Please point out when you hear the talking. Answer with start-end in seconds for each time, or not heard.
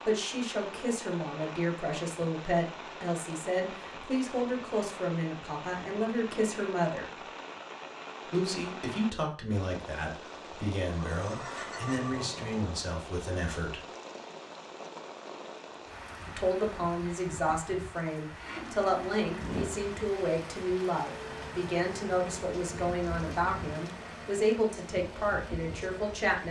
0.0-7.2, 8.2-13.8, 16.2-26.4.